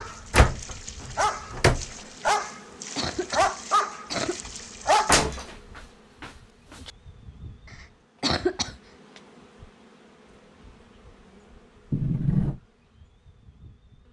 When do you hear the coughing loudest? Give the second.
8 s.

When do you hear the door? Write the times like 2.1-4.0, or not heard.
0.3-1.9, 5.0-5.5, 6.2-6.9, 11.9-12.6.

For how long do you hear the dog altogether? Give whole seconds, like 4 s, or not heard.
5 s.